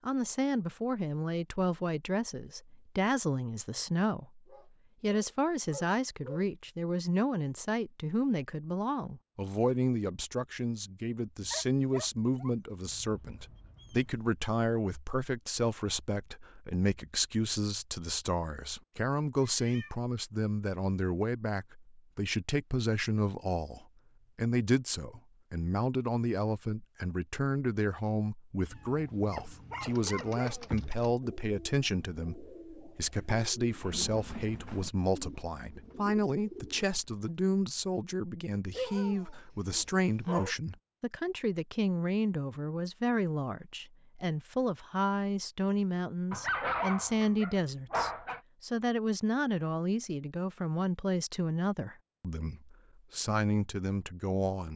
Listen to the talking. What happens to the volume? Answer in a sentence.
The volume of the talking stays about the same.